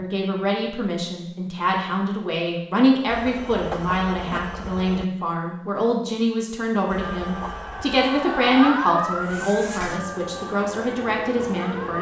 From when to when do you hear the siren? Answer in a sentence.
The siren can be heard from 7.0 to 11.9 s.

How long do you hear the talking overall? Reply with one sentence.
You can hear the talking for 12 seconds altogether.